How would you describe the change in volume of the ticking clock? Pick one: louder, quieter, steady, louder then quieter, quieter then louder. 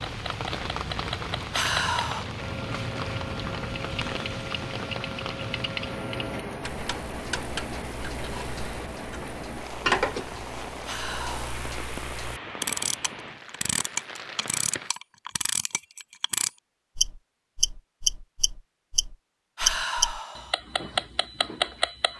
louder.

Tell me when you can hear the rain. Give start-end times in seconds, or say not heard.
0.0-14.9.